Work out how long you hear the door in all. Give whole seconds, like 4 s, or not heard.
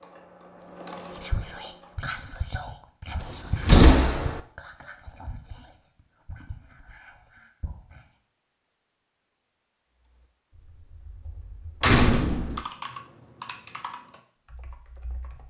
2 s.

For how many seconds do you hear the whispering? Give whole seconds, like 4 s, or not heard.
7 s.